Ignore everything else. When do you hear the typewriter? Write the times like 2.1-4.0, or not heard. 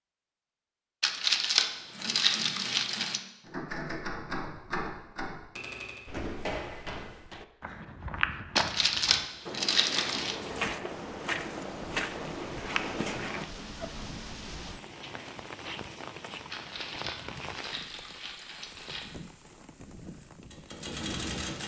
1.8-6.1, 19.4-21.6.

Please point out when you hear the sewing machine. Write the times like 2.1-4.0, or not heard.
not heard.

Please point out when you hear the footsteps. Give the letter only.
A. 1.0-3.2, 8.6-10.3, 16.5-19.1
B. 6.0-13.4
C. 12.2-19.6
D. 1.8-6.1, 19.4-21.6
B.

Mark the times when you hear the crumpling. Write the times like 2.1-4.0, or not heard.
1.0-3.2, 8.6-10.3, 16.5-19.1.